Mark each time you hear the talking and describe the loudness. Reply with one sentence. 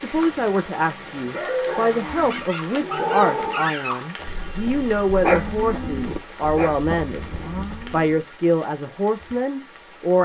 You can hear the talking from 0.0 to 7.3 s, at a steady volume; and briefly from 7.9 to 10.2 s.